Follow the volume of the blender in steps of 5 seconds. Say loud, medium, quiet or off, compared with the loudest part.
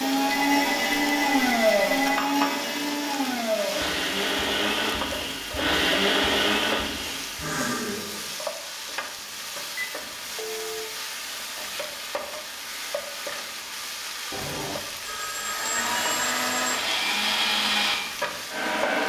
loud, loud, off, loud.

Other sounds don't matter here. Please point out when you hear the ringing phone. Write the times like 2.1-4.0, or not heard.
0.3-2.2, 9.2-10.9, 14.3-16.8.